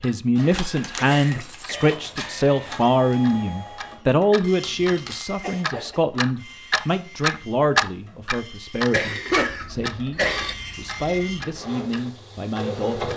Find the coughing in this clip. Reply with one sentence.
You can hear the coughing from 0.3 to 1.9 s, from 5.4 to 6.0 s and from 8.9 to 10.6 s.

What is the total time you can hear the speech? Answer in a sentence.
The speech can be heard for 13 seconds in total.